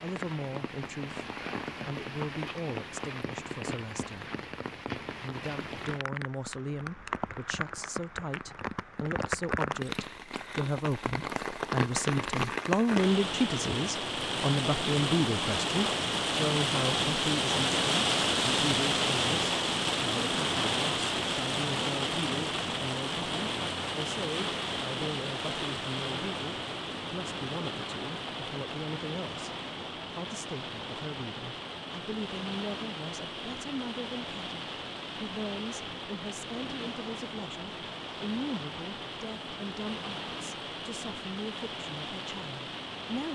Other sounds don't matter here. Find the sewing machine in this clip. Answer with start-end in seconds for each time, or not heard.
not heard.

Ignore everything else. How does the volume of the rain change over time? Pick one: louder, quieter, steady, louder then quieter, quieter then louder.
louder then quieter.